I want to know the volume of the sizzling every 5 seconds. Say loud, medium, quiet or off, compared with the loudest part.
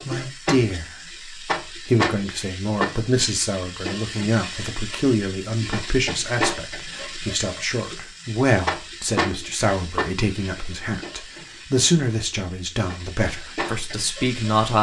loud, loud, medium.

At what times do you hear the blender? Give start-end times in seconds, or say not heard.
not heard.